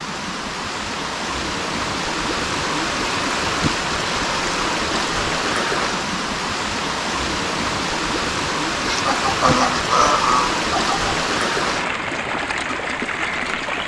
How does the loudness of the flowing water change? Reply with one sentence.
The loudness of the flowing water stays about the same.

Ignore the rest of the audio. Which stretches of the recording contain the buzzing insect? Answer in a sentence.
You can't hear the buzzing insect here.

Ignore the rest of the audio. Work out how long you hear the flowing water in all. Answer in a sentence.
The flowing water can be heard for 14 seconds in total.